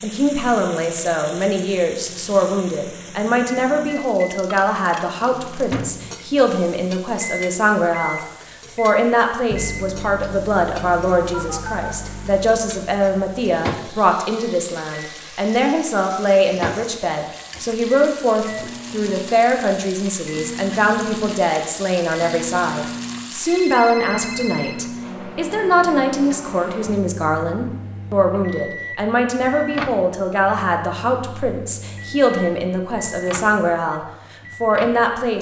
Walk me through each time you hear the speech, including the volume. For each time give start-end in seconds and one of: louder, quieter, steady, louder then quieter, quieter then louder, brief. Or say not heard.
0.0-34.0 steady
34.6-35.3 brief.